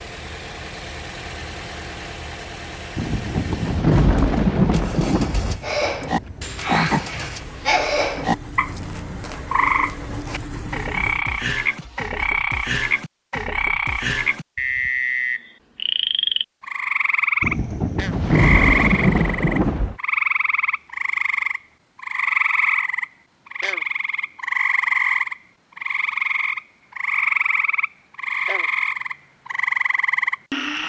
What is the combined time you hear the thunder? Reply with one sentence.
The thunder can be heard for 5 seconds in total.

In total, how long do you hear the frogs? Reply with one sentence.
You can hear the frogs for 25 seconds altogether.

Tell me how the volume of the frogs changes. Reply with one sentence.
The loudness of the frogs stays about the same.